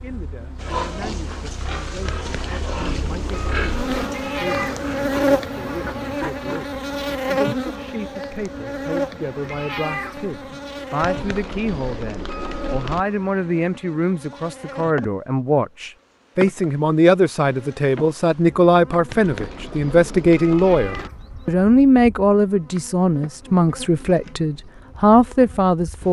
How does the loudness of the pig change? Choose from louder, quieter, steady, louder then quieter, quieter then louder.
steady.